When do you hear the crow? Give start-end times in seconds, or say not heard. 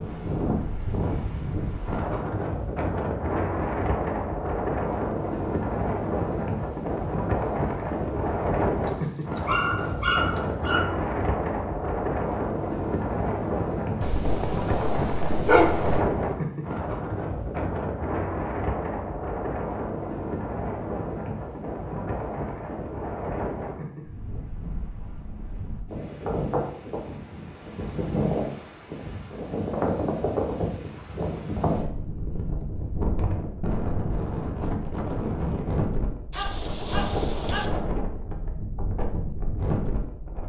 not heard.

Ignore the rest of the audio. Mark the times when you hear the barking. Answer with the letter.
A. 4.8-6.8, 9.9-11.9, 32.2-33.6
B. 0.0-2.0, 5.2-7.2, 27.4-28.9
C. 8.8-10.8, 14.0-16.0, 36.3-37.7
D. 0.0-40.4
C.